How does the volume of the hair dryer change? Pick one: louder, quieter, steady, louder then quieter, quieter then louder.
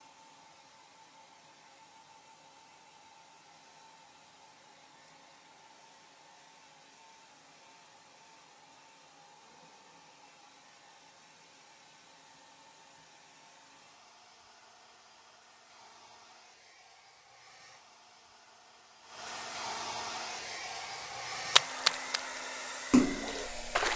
louder.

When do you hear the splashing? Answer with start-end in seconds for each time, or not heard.
21.5-22.2, 22.9-23.9.